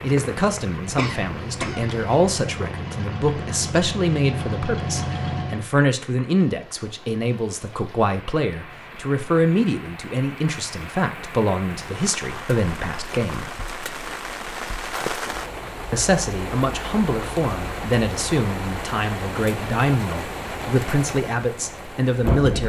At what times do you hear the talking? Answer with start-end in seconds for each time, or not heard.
0.0-13.5, 15.9-22.6.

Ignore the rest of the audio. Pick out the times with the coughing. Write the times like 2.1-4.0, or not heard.
0.8-2.2.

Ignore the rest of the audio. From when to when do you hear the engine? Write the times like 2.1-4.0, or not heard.
0.0-5.7.